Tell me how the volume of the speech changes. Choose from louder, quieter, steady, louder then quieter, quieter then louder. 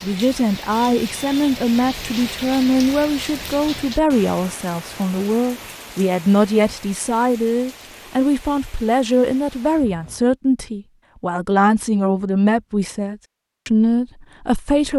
steady.